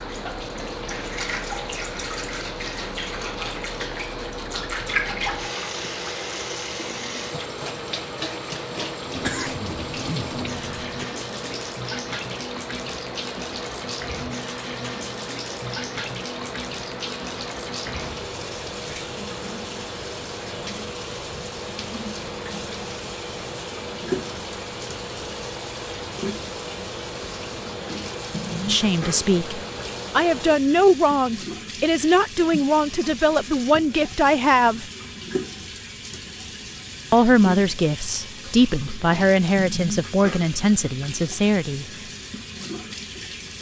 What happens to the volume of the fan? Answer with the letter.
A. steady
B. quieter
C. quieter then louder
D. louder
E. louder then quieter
A.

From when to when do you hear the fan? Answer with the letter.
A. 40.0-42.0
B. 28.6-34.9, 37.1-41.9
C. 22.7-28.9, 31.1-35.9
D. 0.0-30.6
D.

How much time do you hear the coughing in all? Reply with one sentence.
You can hear the coughing for 2 seconds altogether.